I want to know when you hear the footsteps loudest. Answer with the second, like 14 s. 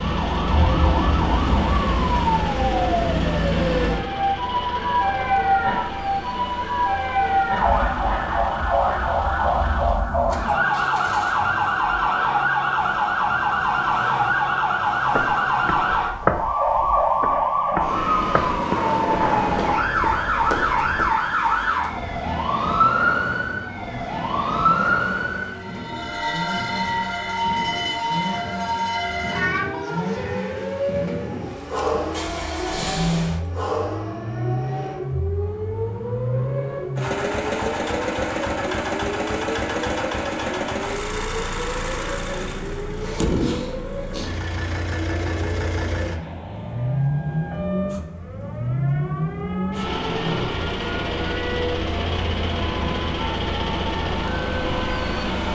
16 s.